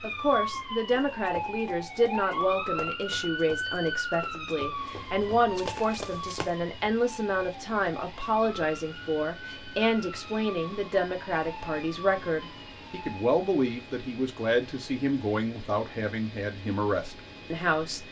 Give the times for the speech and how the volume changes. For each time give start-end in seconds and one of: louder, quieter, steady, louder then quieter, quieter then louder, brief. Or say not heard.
0.0-18.0 steady.